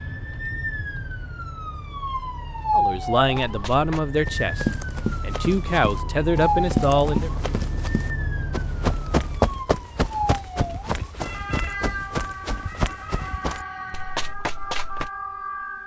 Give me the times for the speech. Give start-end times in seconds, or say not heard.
2.7-7.3.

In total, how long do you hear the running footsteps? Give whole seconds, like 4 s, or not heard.
12 s.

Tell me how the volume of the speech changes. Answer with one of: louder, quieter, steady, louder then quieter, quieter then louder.
quieter then louder.